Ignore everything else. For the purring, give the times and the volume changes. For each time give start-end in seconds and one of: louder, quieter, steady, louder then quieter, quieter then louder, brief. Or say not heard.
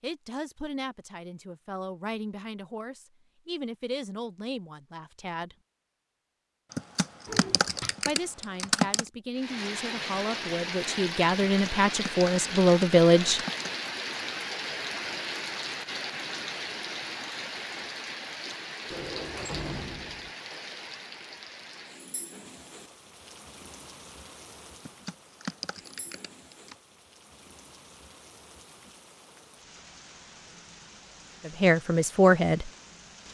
not heard.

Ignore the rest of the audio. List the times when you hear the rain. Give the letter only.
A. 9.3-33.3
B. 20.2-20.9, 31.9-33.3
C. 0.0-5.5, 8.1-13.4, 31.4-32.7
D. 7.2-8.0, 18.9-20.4
A.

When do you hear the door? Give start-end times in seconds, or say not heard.
7.2-8.0, 18.9-20.4.